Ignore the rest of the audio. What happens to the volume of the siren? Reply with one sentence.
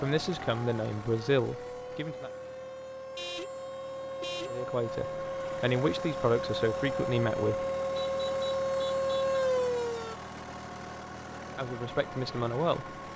The volume of the siren goes up.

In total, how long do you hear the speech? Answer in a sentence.
You can hear the speech for 7 seconds altogether.